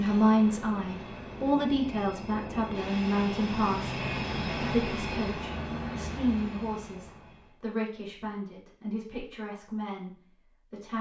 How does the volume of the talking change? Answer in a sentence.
The volume of the talking goes down.